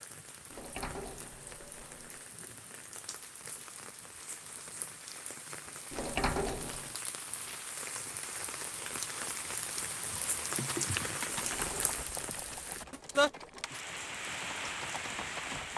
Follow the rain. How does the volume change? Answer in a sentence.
The volume of the rain goes up.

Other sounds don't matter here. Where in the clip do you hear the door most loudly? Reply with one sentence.
The volume of the door peaks at 6 seconds.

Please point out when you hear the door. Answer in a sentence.
You can hear the door from 0.5 to 2.3 s, from 5.9 to 6.9 s and from 11.3 to 13.7 s.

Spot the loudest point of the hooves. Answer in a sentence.
The volume of the hooves peaks at 11 seconds.